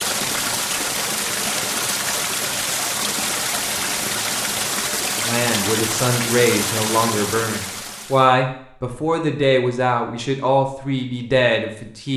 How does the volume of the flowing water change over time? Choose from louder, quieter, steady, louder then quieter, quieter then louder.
steady.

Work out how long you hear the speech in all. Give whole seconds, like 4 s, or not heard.
7 s.